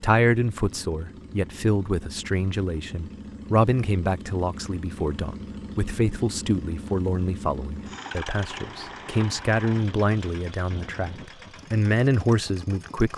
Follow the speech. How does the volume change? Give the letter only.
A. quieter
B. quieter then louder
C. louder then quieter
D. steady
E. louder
D.